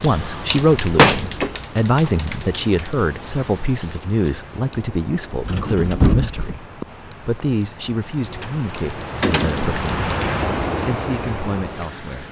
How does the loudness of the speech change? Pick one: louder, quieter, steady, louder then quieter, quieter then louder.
quieter.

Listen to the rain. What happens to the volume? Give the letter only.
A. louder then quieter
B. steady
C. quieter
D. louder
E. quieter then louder
D.